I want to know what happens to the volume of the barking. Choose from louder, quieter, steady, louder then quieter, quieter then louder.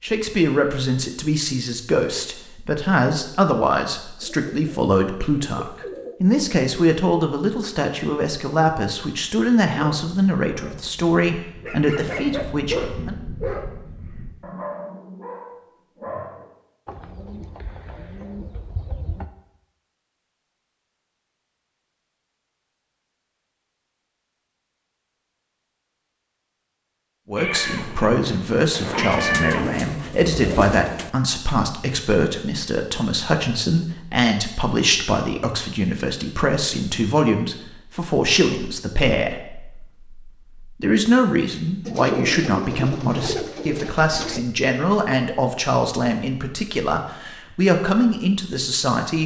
louder then quieter.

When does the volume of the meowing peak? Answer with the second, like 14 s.
29 s.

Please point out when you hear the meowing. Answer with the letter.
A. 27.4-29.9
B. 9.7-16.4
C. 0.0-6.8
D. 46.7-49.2
A.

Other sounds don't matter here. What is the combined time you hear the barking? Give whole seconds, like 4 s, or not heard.
7 s.